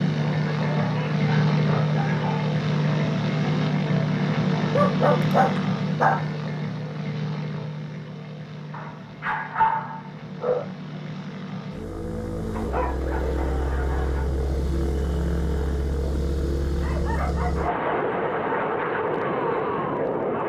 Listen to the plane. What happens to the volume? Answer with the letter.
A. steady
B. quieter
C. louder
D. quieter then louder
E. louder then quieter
D.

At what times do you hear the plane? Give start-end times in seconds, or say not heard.
0.0-20.4.